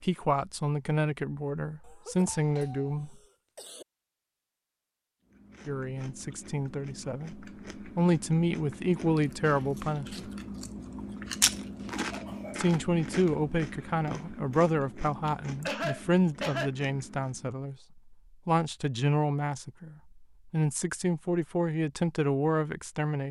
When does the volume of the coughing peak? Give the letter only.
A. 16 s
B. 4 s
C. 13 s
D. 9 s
A.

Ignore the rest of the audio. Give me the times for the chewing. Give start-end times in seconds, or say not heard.
5.2-17.6.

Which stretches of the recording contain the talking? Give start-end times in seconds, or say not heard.
0.0-3.1, 5.7-10.2, 12.6-23.2.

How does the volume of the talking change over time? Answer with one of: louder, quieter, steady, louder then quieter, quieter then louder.
steady.